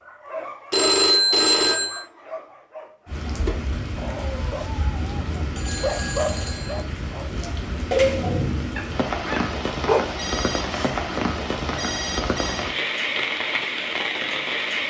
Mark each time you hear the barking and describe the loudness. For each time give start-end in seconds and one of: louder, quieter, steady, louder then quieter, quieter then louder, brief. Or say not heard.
0.0-10.2 louder.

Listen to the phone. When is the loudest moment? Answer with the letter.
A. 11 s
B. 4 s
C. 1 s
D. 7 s
C.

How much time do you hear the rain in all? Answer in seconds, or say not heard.
12 s.